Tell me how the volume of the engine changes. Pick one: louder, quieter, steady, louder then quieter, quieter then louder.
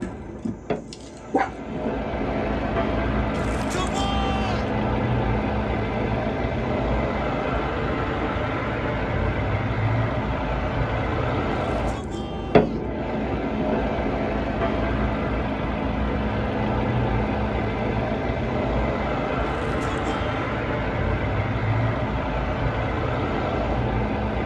steady.